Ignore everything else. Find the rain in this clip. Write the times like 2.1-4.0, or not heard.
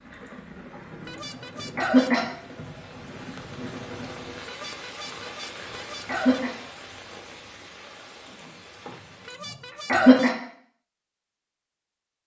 0.0-9.3.